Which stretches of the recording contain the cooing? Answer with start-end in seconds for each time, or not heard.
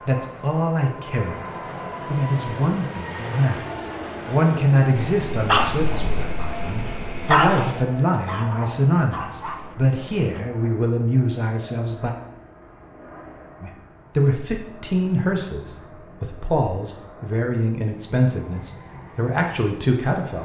not heard.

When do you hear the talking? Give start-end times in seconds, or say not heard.
0.0-12.2, 13.6-20.3.